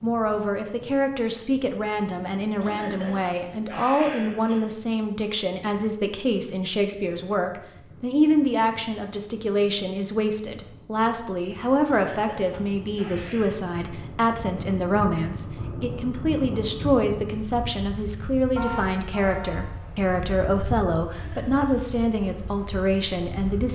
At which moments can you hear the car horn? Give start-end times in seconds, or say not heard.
18.6-19.8.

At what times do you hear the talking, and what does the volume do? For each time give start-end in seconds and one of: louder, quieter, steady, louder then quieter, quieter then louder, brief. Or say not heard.
0.0-23.6 steady.